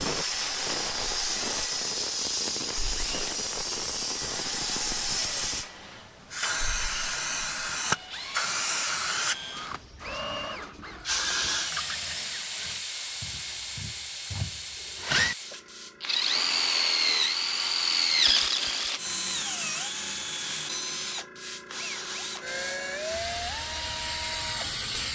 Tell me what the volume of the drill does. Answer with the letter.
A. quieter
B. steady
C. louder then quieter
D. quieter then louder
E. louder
C.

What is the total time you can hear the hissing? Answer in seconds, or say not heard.
25 s.